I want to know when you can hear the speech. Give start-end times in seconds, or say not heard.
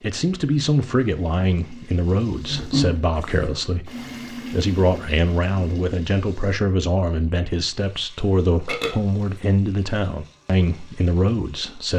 0.0-11.9.